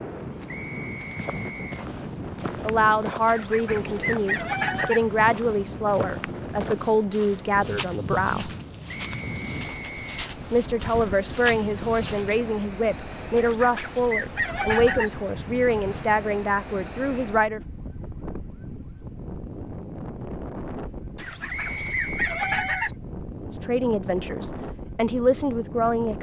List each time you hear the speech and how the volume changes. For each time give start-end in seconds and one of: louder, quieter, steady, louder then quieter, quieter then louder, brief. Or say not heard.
2.6-8.5 steady
10.5-17.6 steady
23.4-26.1 brief.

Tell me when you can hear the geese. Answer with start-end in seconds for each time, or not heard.
3.2-5.0, 13.3-15.1, 21.1-22.9.